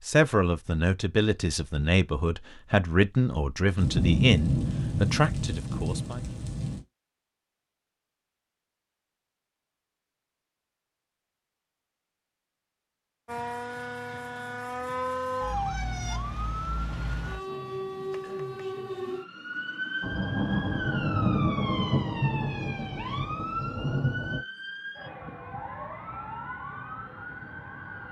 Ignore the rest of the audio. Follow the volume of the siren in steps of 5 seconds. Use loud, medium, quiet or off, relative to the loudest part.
off, off, loud, loud, loud, medium.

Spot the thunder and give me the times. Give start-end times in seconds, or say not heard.
3.8-6.8, 20.0-24.4.